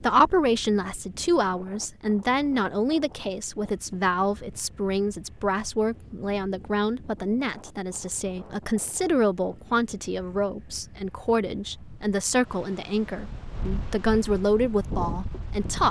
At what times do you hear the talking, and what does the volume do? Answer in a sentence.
You can hear the talking from 0.0 to 15.8 s, at a steady volume.